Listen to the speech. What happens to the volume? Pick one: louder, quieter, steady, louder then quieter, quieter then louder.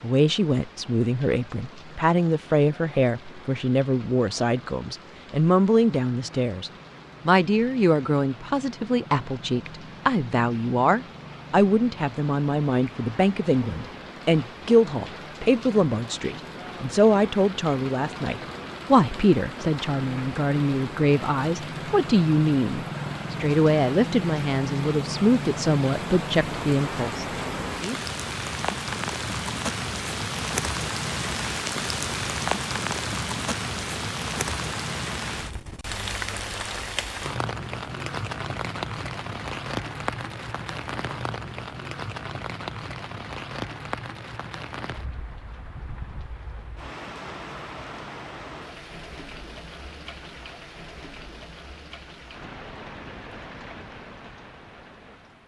steady.